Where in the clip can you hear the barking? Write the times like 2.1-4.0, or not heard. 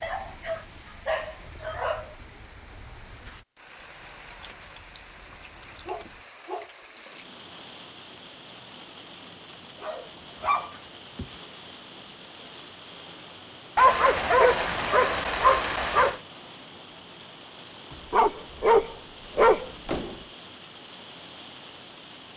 0.0-2.1, 5.8-6.7, 9.8-11.3, 13.8-16.2, 18.1-20.1.